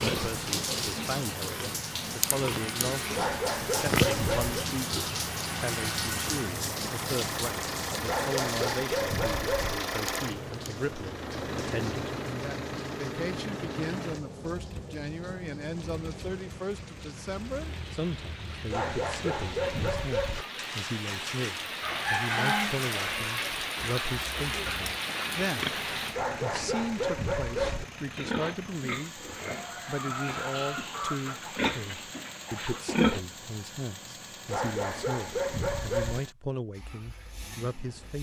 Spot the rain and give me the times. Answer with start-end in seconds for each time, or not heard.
0.0-26.2.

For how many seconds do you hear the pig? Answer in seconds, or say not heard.
14 s.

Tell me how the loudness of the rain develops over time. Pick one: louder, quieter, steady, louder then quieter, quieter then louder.
quieter then louder.